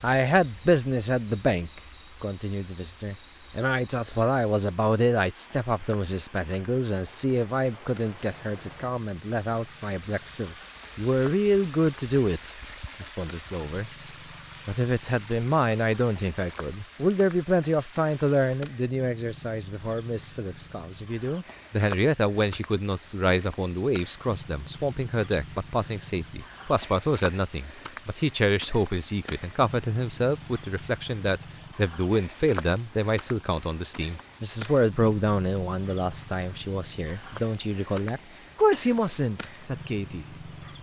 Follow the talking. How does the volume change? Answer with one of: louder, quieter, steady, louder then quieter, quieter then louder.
steady.